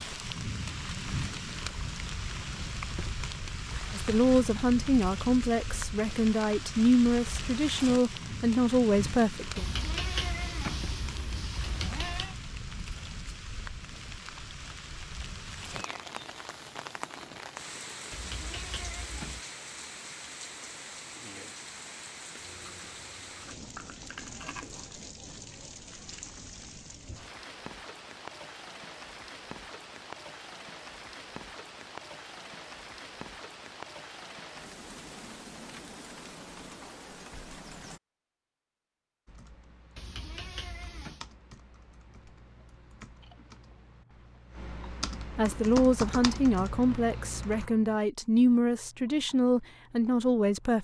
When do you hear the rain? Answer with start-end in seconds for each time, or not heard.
0.0-38.0.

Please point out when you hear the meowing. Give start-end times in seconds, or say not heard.
9.6-12.3, 18.1-19.4, 40.0-41.2.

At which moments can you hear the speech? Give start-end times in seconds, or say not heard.
3.9-9.7, 45.4-50.8.